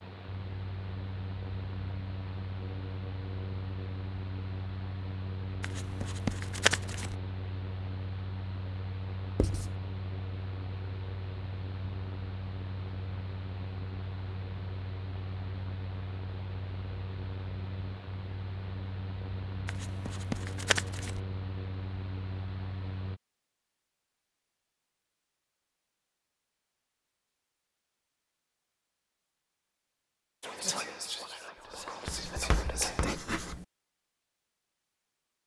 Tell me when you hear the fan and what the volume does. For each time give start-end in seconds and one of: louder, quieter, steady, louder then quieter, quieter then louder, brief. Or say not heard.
0.0-23.2 steady.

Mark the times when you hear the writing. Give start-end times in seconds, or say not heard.
5.6-7.2, 9.3-9.8, 19.6-21.2, 32.0-33.6.